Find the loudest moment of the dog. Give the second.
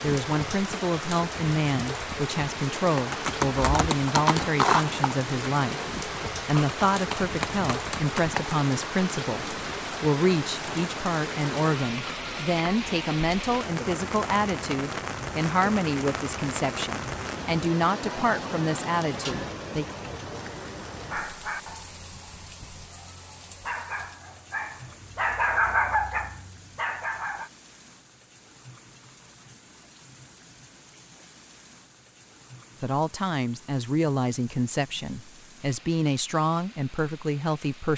26 s.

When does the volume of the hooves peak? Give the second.
5 s.